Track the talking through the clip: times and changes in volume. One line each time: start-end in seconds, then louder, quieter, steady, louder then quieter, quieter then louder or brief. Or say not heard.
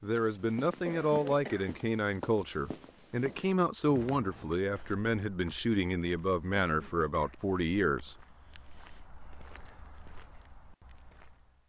0.0-8.2 steady.